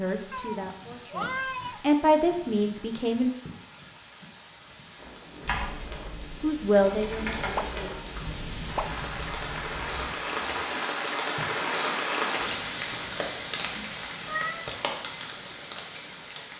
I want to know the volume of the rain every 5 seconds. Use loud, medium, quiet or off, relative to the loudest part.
quiet, medium, loud, medium.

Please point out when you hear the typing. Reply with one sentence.
The typing can be heard from 5.5 to 10.5 s.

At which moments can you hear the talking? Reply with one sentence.
You can hear the talking from 0.0 to 3.4 s and from 6.4 to 8.0 s.